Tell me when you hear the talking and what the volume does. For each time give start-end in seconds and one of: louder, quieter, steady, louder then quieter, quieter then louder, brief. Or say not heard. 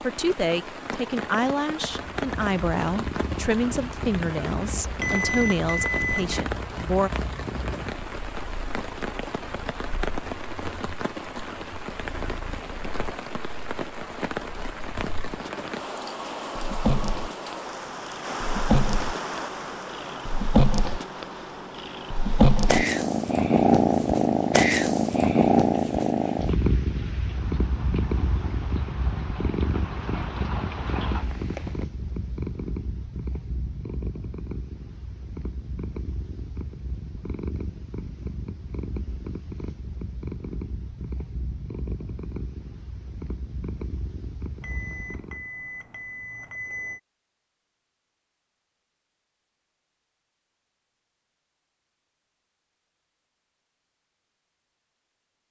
0.0-7.1 steady.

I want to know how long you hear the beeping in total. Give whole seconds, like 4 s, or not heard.
4 s.